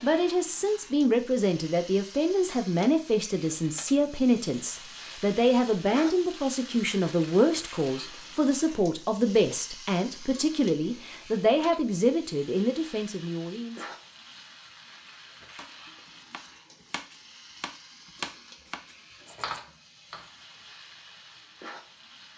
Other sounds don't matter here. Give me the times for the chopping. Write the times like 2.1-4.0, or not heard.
15.6-20.3.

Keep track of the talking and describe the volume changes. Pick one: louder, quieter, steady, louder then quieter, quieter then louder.
steady.